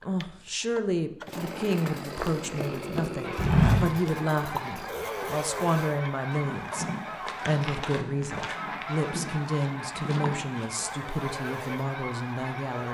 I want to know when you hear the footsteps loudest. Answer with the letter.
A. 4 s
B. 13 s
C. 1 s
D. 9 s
A.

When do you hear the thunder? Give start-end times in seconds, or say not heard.
not heard.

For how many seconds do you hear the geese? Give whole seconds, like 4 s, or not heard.
10 s.